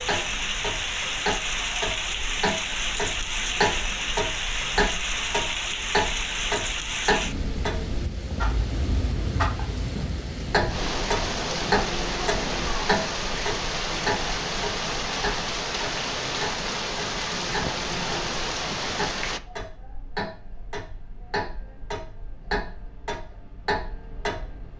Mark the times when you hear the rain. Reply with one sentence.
The rain can be heard from 0.0 to 19.4 s.